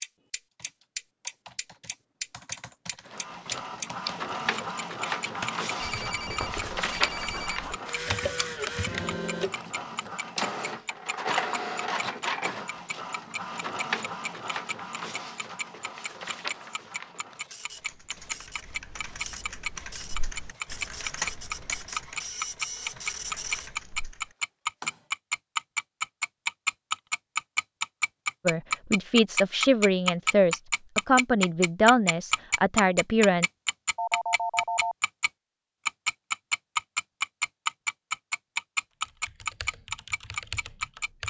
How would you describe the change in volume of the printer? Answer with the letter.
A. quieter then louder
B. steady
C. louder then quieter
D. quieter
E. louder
D.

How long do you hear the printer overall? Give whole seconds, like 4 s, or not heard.
21 s.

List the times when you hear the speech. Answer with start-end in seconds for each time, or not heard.
28.4-33.5.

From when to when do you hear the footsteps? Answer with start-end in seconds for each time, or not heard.
not heard.